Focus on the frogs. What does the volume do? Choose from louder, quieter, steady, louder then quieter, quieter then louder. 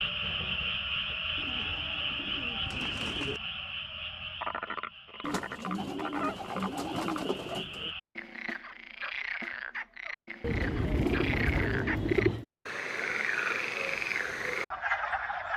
quieter then louder.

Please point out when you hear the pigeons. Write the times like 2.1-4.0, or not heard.
1.4-3.4, 5.2-8.0, 10.4-12.4.